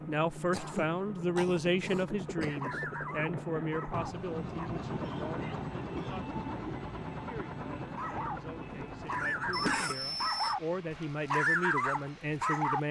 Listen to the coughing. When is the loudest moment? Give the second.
10 s.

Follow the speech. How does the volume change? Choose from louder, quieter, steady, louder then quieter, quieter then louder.
quieter then louder.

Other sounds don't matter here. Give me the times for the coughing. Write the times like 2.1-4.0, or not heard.
0.5-2.6, 5.0-6.3, 9.5-10.6.